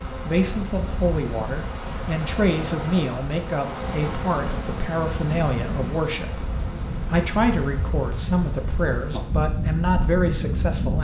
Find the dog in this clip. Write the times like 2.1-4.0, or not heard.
not heard.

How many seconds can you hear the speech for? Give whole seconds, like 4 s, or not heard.
10 s.